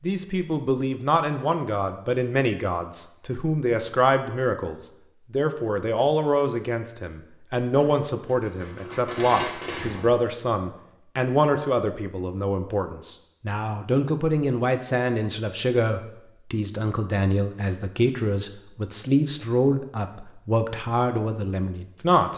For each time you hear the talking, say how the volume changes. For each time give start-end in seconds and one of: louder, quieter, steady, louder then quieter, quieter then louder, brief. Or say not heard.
0.0-22.3 steady.